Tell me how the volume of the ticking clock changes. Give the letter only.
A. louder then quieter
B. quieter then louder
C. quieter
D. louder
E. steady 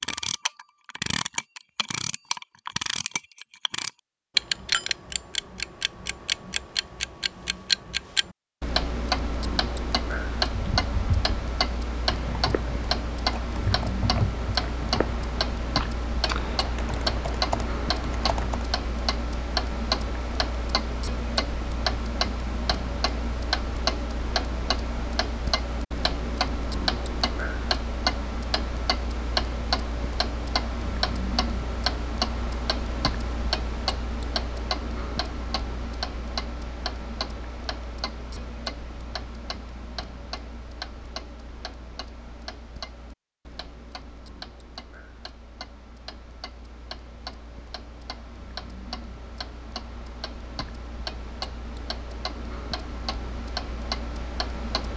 C.